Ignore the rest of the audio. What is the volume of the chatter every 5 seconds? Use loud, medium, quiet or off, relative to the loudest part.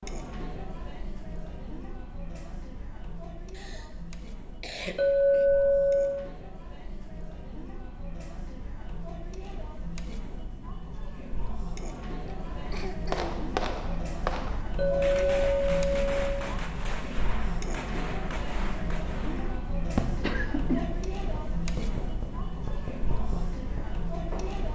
medium, medium, loud, loud, loud.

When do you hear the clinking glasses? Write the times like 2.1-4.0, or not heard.
5.0-6.2, 14.8-16.4.